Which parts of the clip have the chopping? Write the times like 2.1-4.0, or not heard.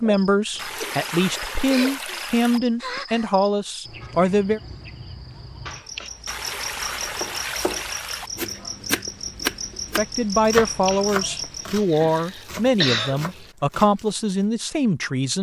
7.2-14.2.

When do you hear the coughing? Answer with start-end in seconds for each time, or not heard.
0.5-2.0, 5.7-6.1, 10.6-13.2.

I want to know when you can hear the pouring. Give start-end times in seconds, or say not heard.
0.6-2.6, 6.2-8.3, 11.5-13.6.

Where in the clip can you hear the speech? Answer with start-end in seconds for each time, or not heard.
0.0-4.6, 9.9-15.3.